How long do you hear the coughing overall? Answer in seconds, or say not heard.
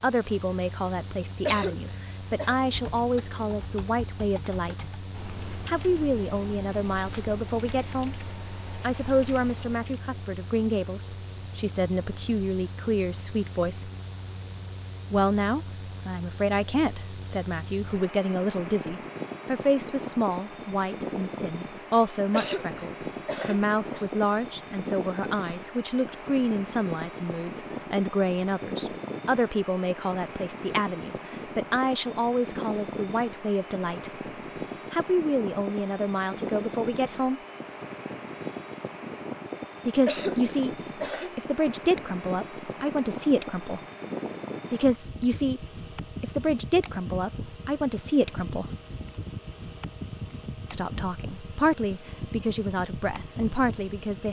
4 s.